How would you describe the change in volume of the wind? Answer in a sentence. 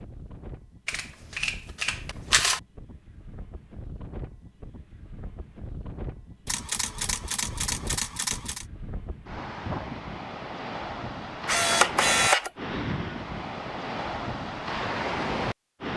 The volume of the wind goes up.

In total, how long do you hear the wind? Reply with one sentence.
The wind can be heard for 16 seconds in total.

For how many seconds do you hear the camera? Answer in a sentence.
The camera can be heard for 5 seconds in total.